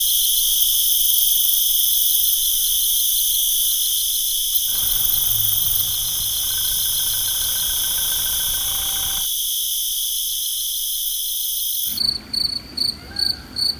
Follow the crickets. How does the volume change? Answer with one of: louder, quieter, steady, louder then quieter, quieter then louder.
steady.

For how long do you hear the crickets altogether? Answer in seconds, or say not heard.
14 s.